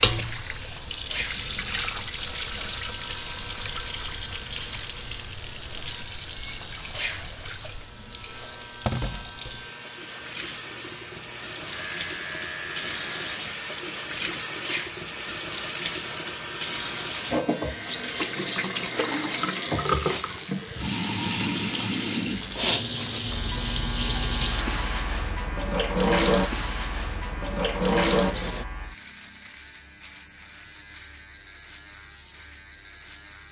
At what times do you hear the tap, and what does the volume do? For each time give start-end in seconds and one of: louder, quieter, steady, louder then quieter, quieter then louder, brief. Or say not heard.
0.0-28.6 quieter then louder.